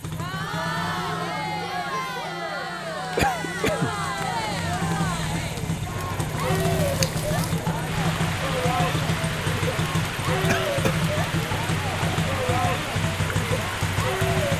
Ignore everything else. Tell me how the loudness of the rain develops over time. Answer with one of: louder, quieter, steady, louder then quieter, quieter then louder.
steady.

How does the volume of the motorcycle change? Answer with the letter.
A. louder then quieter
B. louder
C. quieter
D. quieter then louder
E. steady
B.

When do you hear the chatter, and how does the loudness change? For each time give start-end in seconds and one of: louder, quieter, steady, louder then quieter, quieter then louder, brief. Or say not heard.
0.0-14.5 steady.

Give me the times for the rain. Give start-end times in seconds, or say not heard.
6.3-14.5.